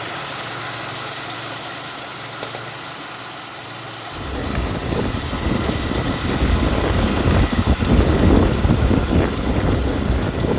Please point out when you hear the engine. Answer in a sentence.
The engine can be heard from 0.0 to 10.5 s.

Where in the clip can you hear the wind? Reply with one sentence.
You can hear the wind from 4.1 to 10.5 s.